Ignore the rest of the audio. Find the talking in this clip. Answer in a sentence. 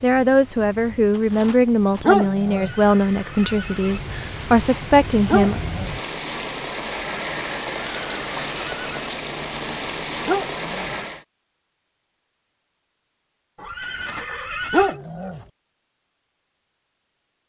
The talking can be heard from 0.0 to 5.6 s.